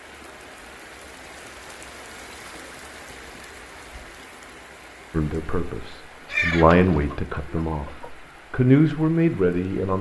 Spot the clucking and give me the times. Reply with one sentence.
You can hear the clucking from 6.2 to 8.1 s.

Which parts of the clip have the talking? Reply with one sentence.
You can hear the talking from 5.1 to 9.9 s.